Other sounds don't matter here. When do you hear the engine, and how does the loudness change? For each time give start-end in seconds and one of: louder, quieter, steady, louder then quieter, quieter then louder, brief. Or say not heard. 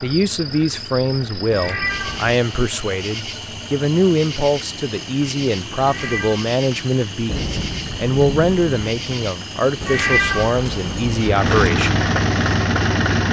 0.0-13.2 louder.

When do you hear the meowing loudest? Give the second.
10 s.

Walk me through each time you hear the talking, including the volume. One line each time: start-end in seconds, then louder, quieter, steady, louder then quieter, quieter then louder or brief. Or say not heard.
0.0-12.1 steady.